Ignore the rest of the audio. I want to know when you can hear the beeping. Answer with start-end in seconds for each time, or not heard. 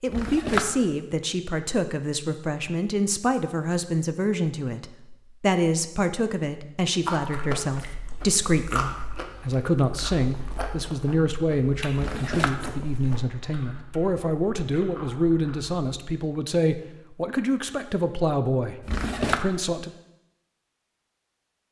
not heard.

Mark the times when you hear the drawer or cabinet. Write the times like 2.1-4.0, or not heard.
0.1-0.9, 11.9-12.8, 18.8-19.4.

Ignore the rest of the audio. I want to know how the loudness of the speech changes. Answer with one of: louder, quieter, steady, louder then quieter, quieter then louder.
steady.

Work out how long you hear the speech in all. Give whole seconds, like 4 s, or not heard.
20 s.